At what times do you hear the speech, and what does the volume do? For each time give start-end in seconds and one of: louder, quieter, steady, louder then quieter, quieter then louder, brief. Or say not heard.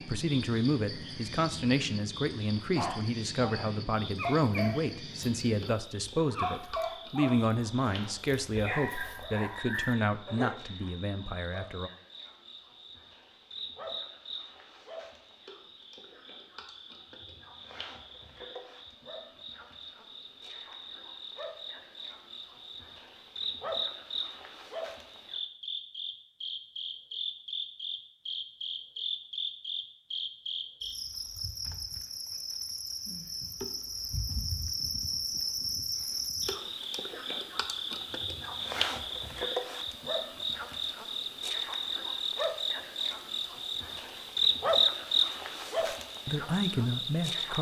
0.0-11.9 steady
45.8-47.5 brief.